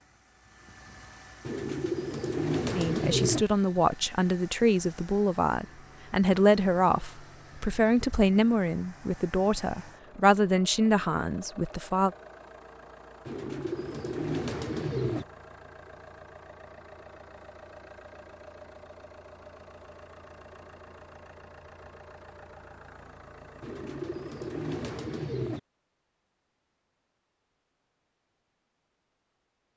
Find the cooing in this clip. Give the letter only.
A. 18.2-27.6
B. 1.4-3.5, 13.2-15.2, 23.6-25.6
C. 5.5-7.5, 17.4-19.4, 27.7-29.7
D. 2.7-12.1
B.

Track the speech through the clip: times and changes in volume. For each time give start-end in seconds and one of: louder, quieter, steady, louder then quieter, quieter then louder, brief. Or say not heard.
2.7-12.1 steady.